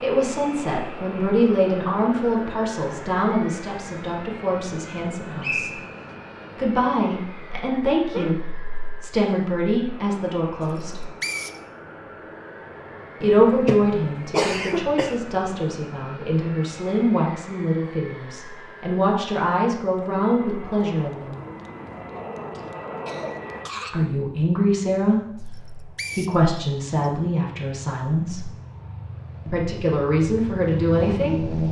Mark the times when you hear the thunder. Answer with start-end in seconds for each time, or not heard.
not heard.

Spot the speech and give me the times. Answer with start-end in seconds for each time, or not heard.
0.0-5.7, 6.5-11.1, 13.2-21.4, 23.9-28.5, 29.4-31.6.